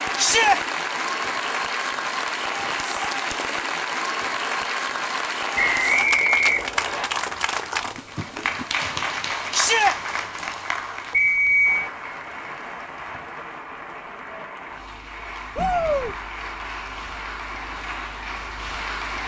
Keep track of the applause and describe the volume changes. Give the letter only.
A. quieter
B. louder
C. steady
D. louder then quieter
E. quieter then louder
A.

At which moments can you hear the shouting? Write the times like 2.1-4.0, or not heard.
0.1-0.6, 9.5-9.9, 15.6-16.1.